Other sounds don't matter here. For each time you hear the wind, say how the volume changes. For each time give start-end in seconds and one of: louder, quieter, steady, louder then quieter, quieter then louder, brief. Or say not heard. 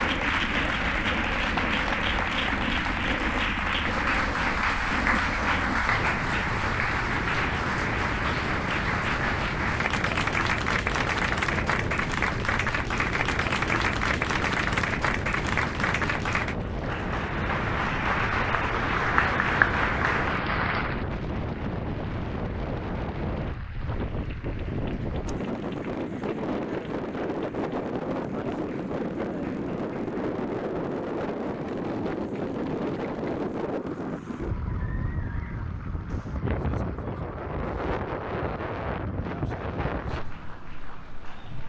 0.0-41.6 steady.